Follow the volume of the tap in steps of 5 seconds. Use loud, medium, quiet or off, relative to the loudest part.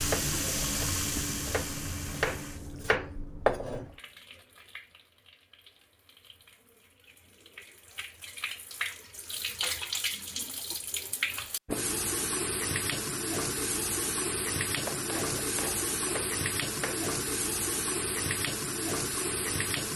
loud, medium, loud, loud.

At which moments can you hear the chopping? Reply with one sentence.
You can hear the chopping from 0.0 to 3.9 s and from 14.7 to 17.1 s.